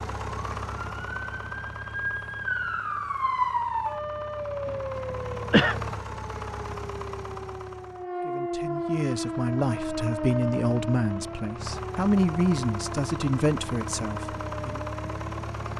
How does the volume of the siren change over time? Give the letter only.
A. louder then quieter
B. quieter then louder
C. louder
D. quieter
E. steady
D.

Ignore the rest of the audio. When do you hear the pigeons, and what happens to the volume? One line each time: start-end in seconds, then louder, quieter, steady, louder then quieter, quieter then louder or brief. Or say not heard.
not heard.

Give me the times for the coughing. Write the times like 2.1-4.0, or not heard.
4.7-5.8.